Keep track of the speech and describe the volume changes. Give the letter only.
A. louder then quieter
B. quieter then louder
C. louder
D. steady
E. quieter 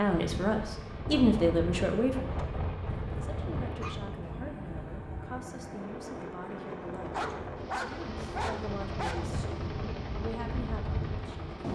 E.